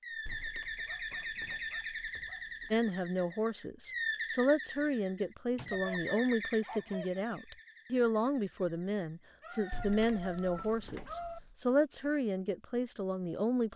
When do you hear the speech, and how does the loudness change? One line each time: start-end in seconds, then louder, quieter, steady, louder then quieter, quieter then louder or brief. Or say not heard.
2.7-13.7 steady.